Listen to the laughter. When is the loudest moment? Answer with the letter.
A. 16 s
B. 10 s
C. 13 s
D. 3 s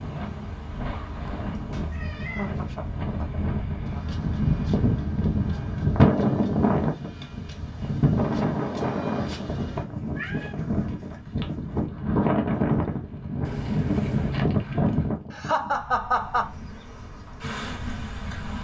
A.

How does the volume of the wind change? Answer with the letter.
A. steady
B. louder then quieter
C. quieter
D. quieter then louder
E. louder
B.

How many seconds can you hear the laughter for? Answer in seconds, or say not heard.
2 s.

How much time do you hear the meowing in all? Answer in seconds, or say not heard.
3 s.